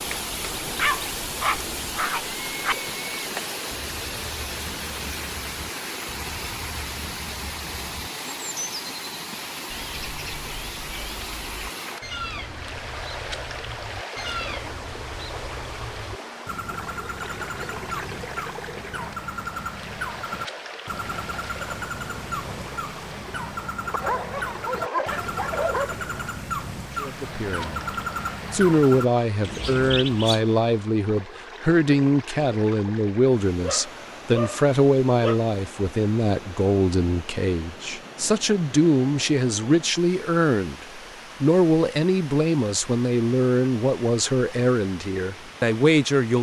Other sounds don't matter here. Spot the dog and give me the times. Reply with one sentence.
You can hear the dog from 0.6 to 2.8 s, from 23.9 to 25.9 s and from 33.6 to 35.4 s.